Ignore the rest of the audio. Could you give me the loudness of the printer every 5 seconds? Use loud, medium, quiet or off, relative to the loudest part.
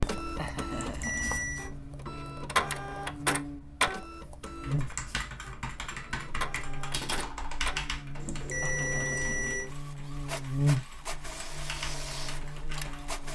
loud, medium, medium.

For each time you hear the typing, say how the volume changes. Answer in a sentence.
The typing can be heard from 4.5 to 13.2 s, getting quieter then louder.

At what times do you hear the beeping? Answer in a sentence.
The beeping can be heard from 0.7 to 1.7 s and from 8.2 to 9.7 s.